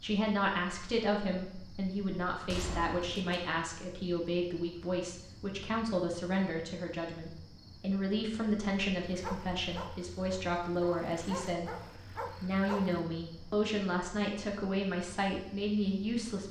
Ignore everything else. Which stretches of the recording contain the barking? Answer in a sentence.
The barking can be heard from 9.1 to 13.0 s.